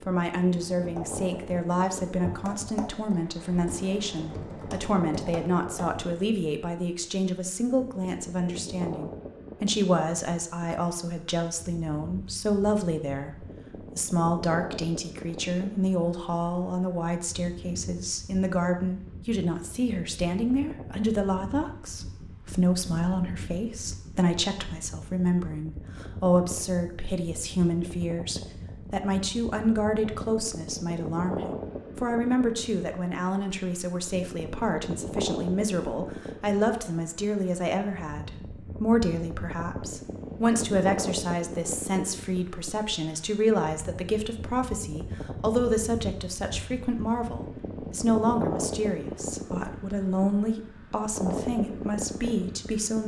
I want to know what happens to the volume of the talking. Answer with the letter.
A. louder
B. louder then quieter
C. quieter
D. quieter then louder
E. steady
E.